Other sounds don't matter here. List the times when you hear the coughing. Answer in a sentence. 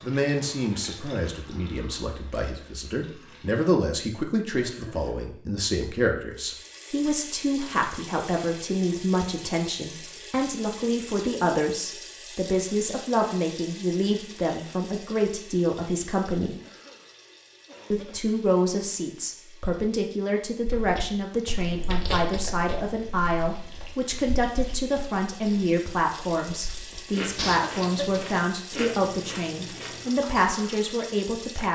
The coughing can be heard from 4.6 to 5.3 s, from 16.6 to 18.4 s and from 27.4 to 28.2 s.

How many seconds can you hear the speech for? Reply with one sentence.
The speech can be heard for 30 seconds in total.